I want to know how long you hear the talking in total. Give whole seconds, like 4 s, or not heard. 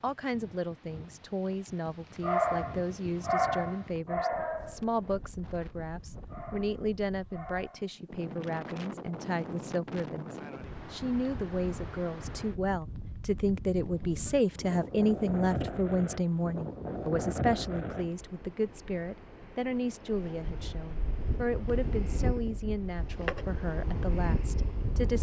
25 s.